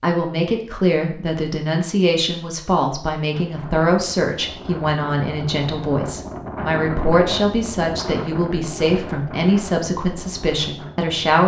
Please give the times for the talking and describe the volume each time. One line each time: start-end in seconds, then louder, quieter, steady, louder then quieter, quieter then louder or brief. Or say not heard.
0.0-11.4 steady.